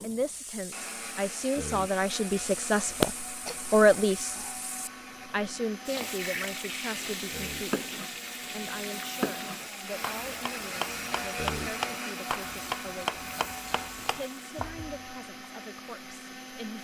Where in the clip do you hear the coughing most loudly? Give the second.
3 s.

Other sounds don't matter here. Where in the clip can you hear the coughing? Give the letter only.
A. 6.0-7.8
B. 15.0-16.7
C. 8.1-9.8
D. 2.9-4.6
D.